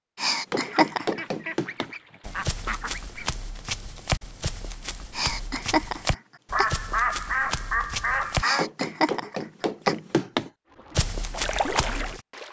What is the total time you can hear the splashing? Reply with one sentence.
The splashing can be heard for 2 seconds in total.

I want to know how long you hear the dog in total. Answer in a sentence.
The dog can't be heard in this clip.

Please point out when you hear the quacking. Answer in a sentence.
You can hear the quacking from 0.7 to 3.4 s and from 6.5 to 8.7 s.